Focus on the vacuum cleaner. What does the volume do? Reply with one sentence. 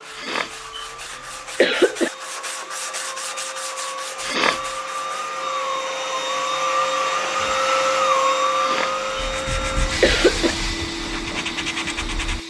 The loudness of the vacuum cleaner goes up, then down.